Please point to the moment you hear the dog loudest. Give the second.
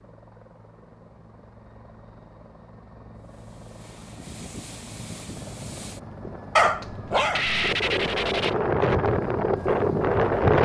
7 s.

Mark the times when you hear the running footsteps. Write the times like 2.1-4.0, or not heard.
not heard.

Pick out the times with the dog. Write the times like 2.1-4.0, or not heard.
6.5-8.5.